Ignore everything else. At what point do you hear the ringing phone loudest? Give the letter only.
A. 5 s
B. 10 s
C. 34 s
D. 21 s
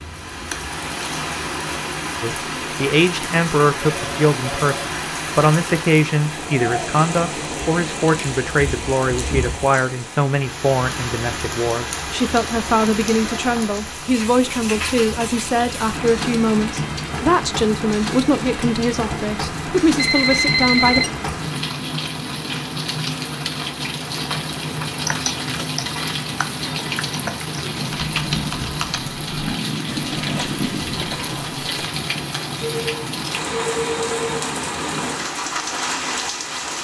D.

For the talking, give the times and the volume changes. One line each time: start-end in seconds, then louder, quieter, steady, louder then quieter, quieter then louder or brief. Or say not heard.
2.2-21.1 steady.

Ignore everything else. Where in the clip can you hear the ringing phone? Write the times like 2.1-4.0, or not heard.
3.8-4.9, 19.9-21.1, 32.6-34.5.